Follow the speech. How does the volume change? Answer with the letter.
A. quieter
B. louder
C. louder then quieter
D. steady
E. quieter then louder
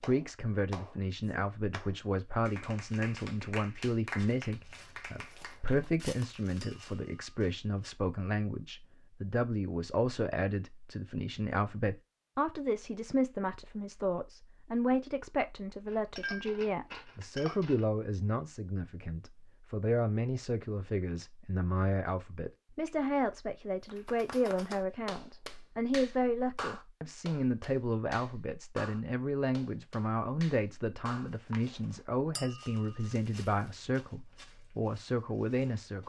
D.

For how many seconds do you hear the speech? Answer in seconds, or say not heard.
36 s.